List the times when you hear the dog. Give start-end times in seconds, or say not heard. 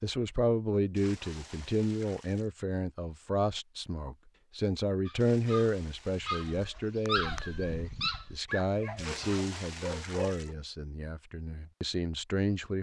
5.0-10.6.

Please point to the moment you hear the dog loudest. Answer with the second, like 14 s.
7 s.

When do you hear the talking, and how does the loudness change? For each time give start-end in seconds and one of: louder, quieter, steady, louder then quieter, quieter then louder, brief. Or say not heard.
0.0-12.7 quieter.